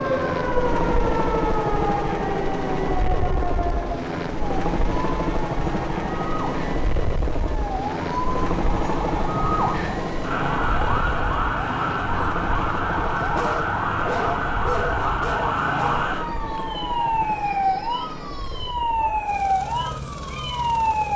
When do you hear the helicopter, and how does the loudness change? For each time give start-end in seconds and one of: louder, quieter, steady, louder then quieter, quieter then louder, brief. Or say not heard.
0.0-21.1 quieter.